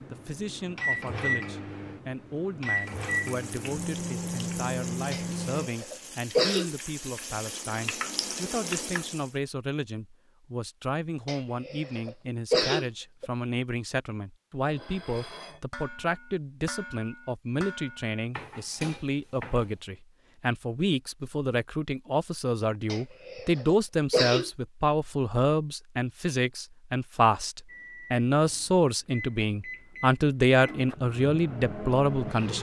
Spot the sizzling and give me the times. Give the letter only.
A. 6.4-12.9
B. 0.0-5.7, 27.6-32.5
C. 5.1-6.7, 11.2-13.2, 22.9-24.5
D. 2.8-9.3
D.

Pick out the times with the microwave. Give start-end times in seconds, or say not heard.
0.0-5.7, 27.6-32.5.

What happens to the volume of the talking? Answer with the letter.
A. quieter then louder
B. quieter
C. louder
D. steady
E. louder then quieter
C.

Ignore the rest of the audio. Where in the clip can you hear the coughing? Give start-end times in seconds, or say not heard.
5.1-6.7, 11.2-13.2, 22.9-24.5.